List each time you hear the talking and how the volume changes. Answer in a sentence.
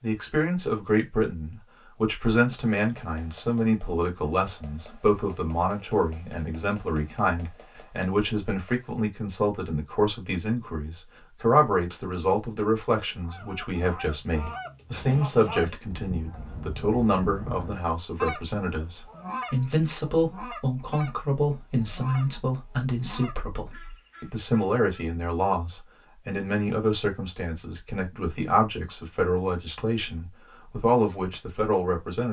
You can hear the talking from 0.0 to 32.2 s, at a steady volume.